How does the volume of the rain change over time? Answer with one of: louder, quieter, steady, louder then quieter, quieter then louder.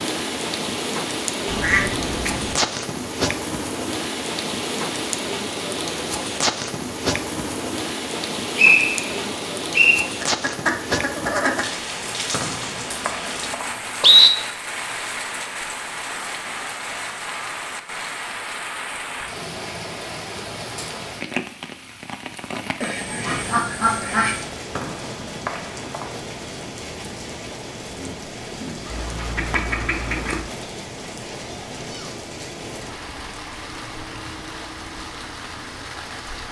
quieter.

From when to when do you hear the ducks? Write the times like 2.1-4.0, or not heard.
1.4-2.5, 10.2-11.7, 22.8-24.5, 28.9-30.4.